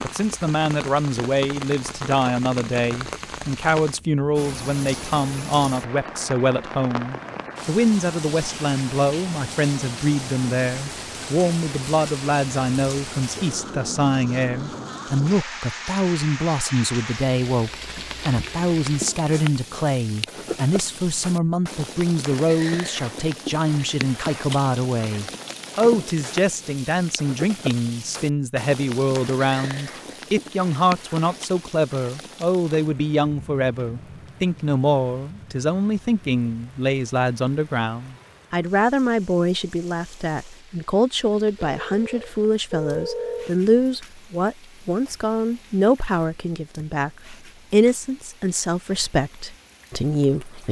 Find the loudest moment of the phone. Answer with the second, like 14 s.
43 s.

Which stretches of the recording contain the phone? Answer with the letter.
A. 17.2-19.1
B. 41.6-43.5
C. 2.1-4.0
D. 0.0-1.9
B.